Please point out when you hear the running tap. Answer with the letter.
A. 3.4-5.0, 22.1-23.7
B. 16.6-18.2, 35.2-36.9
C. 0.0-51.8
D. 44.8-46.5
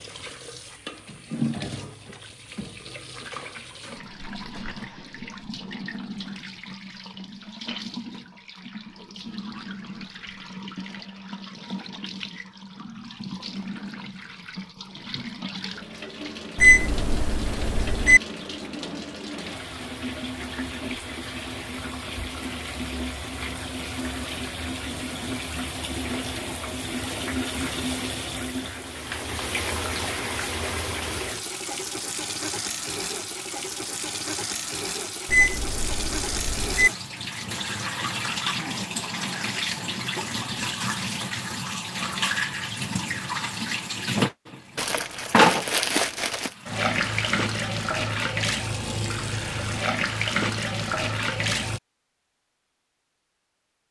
C.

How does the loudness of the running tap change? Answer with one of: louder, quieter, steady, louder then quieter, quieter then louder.
louder.